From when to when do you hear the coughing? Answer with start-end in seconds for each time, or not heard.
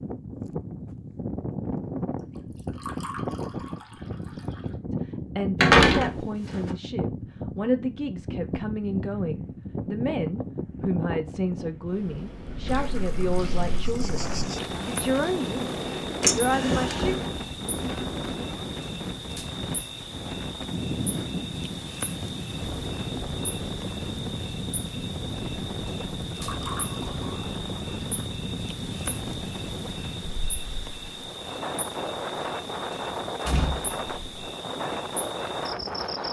not heard.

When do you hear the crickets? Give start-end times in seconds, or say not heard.
13.8-36.2.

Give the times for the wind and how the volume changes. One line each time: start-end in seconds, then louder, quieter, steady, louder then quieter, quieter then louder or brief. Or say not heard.
0.0-36.2 steady.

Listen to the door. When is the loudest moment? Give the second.
6 s.